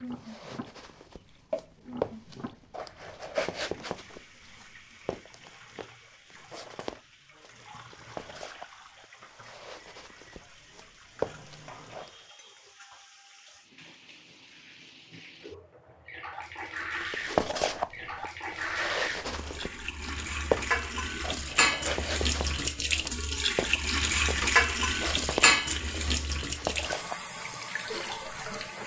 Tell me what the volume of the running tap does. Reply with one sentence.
The volume of the running tap goes down, then up.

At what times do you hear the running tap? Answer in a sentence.
The running tap can be heard from 0.0 to 28.8 s.